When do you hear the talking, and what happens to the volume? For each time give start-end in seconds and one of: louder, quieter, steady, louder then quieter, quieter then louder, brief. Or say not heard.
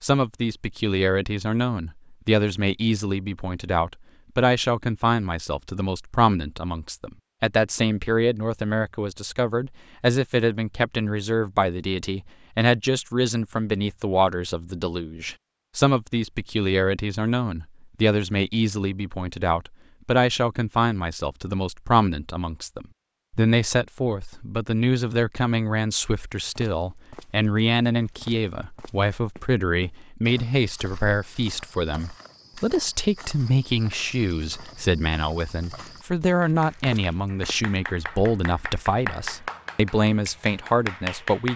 0.0-41.5 steady.